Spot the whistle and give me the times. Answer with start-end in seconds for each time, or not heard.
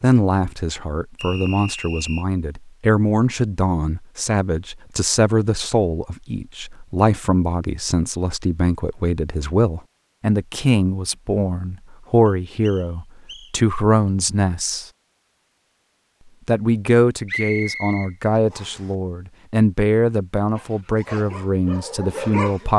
1.1-2.2, 12.2-13.6, 17.2-18.8.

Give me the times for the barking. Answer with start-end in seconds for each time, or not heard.
20.6-22.7.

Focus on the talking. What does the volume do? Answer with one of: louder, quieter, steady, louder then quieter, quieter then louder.
steady.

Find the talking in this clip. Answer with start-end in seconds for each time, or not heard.
0.0-14.8, 16.4-22.7.